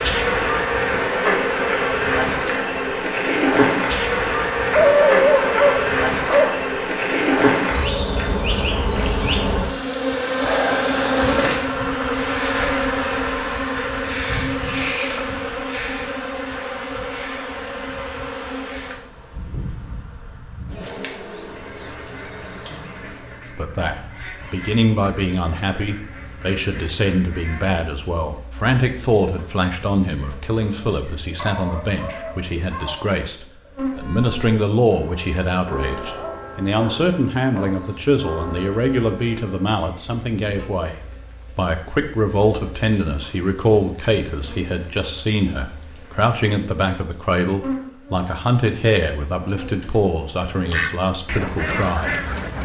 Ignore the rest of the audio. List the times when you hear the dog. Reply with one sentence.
The dog can be heard from 4.7 to 6.6 s, from 31.4 to 33.2 s and from 36.0 to 37.8 s.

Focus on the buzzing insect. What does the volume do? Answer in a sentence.
The loudness of the buzzing insect goes down.